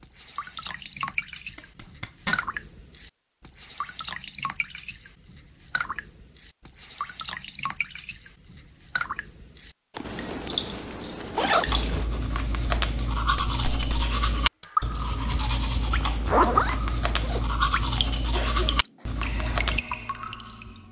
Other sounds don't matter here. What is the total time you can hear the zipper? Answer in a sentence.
You can hear the zipper for 4 seconds altogether.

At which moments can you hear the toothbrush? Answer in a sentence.
The toothbrush can be heard from 11.7 to 19.9 s.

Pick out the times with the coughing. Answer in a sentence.
You can hear the coughing from 18.3 to 19.2 s.